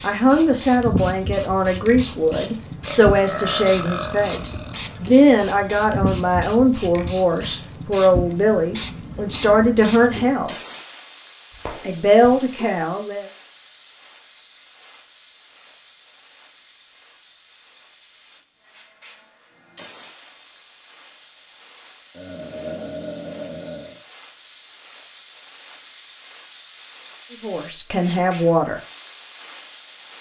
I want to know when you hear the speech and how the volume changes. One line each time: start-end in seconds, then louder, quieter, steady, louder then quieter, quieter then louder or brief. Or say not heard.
0.0-10.6 steady
11.8-13.2 brief
27.4-28.8 brief.